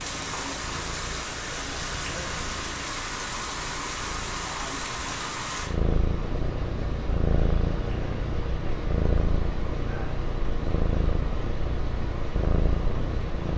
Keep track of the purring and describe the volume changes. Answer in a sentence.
The volume of the purring goes up.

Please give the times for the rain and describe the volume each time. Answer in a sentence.
You can hear the rain from 0.0 to 13.5 s, getting quieter.